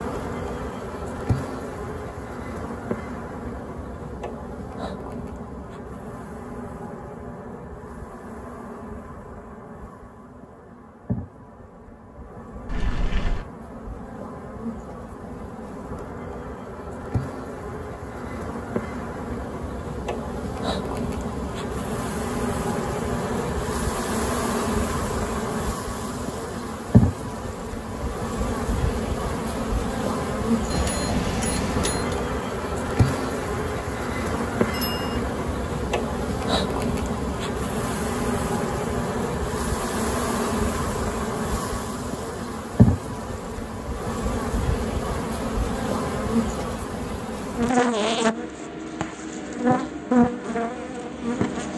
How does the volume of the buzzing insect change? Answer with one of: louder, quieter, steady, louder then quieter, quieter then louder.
louder.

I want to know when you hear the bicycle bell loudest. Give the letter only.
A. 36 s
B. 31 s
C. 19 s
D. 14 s
B.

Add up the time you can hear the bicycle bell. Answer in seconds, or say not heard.
3 s.